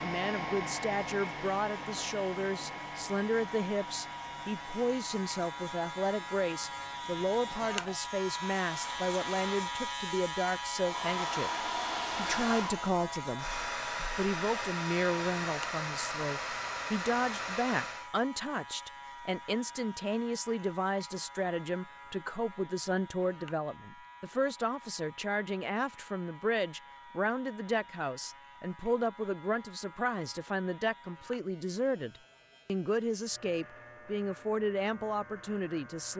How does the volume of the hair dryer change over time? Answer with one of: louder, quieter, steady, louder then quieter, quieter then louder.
quieter then louder.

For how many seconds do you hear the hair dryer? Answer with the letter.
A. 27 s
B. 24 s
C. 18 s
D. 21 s
C.